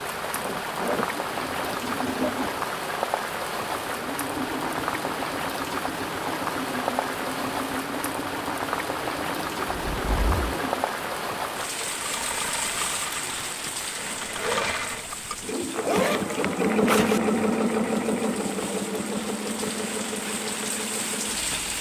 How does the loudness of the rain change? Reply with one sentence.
The loudness of the rain goes down.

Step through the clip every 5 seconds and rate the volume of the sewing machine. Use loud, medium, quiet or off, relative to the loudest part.
medium, medium, medium, loud, medium.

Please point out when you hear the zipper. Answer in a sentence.
You can hear the zipper from 0.3 to 2.3 s, from 9.7 to 10.6 s and from 15.7 to 17.2 s.